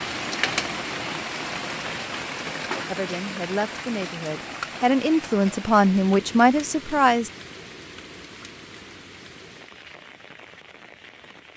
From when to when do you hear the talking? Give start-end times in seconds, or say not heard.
2.9-7.3.